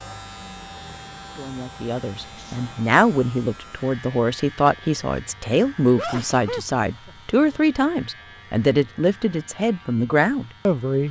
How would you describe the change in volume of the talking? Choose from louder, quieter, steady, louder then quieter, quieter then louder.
steady.